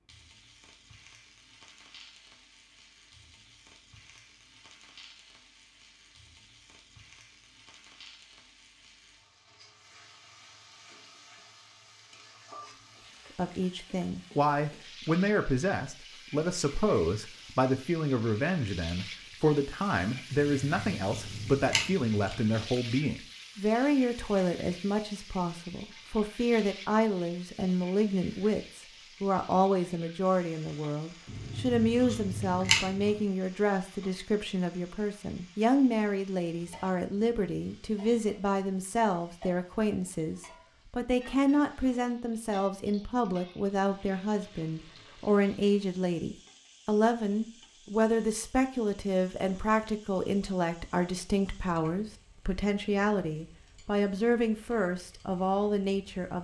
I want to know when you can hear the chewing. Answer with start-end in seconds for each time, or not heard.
20.3-22.6, 31.2-33.2.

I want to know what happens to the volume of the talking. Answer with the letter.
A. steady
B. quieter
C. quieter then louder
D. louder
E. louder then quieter
A.